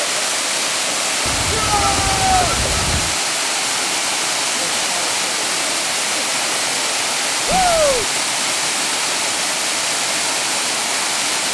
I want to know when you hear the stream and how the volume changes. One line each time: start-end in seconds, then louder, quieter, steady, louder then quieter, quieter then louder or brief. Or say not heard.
0.0-11.4 steady.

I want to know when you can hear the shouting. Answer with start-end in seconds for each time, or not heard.
1.5-2.5, 7.5-8.1.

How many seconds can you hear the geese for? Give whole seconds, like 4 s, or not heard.
2 s.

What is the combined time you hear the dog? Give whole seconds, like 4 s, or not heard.
not heard.